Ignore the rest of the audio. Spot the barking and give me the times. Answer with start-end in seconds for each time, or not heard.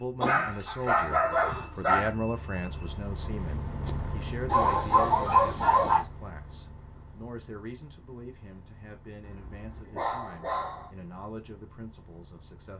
0.2-2.1, 4.5-6.0, 9.2-10.9.